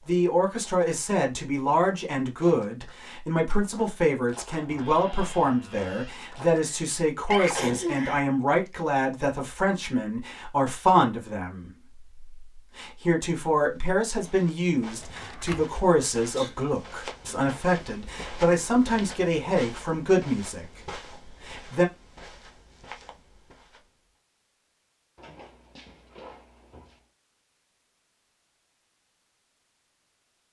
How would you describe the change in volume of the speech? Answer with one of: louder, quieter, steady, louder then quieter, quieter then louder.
steady.